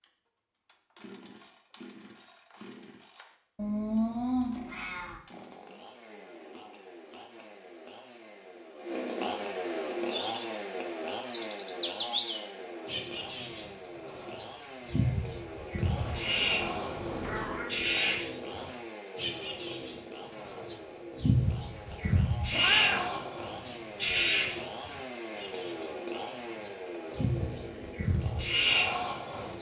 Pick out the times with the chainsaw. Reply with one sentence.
You can hear the chainsaw from 0.0 to 29.5 s.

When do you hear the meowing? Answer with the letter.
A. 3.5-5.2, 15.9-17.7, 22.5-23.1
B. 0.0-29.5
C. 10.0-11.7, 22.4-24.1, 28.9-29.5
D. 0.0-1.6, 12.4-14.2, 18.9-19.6
A.